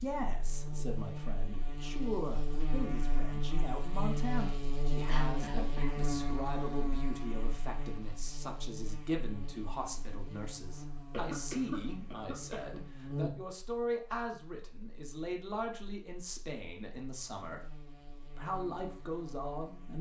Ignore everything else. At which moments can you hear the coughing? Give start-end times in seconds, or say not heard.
5.0-6.0, 11.1-12.8.